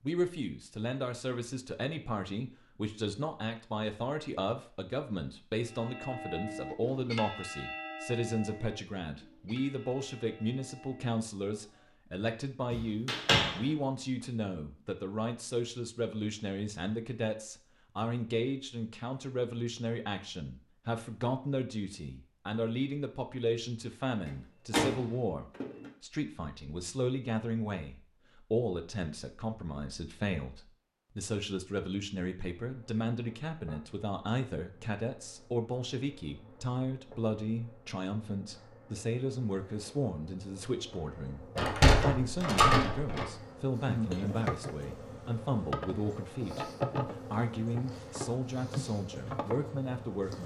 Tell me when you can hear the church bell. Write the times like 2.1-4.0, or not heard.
5.7-12.0.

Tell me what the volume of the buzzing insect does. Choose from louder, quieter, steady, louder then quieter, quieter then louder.
louder.